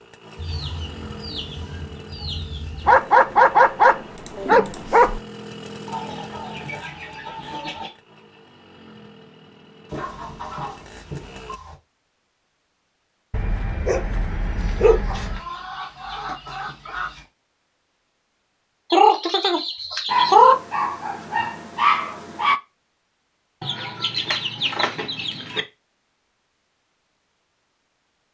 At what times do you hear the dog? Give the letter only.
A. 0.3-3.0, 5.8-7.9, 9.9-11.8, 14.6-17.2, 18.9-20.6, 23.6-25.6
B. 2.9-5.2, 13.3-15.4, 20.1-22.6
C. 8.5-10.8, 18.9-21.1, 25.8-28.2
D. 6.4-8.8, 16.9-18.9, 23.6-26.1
B.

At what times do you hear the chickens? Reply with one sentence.
You can hear the chickens from 0.3 to 3.0 s, from 5.8 to 7.9 s, from 9.9 to 11.8 s, from 14.6 to 17.2 s, from 18.9 to 20.6 s and from 23.6 to 25.6 s.